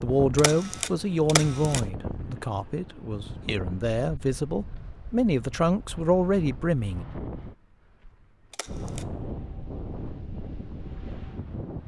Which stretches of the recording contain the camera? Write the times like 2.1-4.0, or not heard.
0.3-1.8, 8.5-9.1.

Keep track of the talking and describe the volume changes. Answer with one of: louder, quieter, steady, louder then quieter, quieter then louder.
quieter then louder.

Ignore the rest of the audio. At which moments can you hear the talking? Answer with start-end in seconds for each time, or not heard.
0.0-7.0.